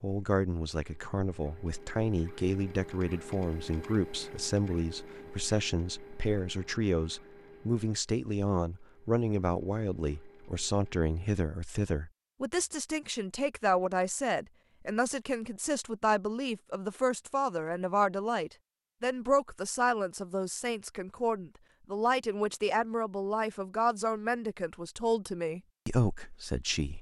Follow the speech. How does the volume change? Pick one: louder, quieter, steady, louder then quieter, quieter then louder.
steady.